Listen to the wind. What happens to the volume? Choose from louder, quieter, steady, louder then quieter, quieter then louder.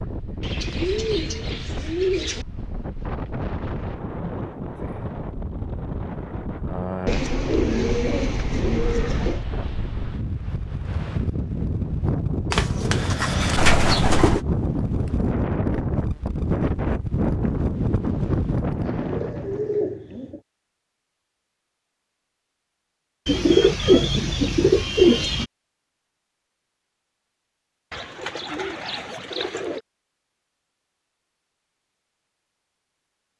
louder.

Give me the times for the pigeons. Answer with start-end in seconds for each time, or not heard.
0.4-2.5, 7.0-9.4, 12.5-14.4, 18.8-20.4, 23.2-25.4, 27.9-29.8.